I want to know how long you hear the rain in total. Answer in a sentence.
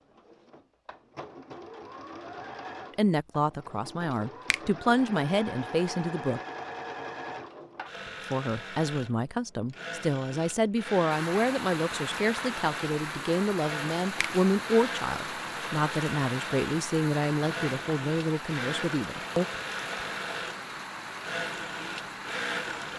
You can hear the rain for 12 seconds altogether.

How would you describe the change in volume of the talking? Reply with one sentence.
The loudness of the talking stays about the same.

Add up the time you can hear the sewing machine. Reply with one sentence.
You can hear the sewing machine for 23 seconds altogether.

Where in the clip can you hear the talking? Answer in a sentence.
The talking can be heard from 3.0 to 6.4 s and from 8.3 to 19.4 s.